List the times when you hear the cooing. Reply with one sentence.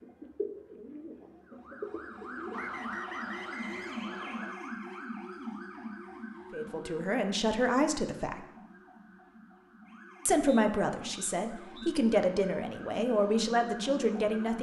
You can hear the cooing from 0.0 to 3.0 s.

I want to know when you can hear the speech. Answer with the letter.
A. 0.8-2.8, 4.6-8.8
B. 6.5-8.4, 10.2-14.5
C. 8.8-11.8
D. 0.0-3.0
B.